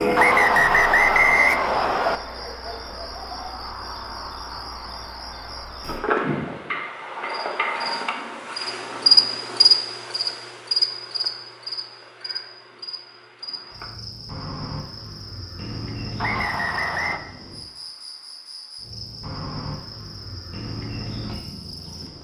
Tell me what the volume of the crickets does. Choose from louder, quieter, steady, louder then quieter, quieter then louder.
louder then quieter.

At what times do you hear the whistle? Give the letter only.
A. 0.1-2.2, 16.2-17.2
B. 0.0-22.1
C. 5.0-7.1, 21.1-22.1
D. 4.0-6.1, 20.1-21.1
A.